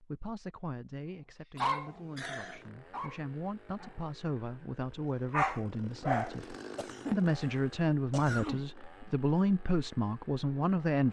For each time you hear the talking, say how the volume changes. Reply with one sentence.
The talking can be heard from 0.0 to 11.0 s, getting louder.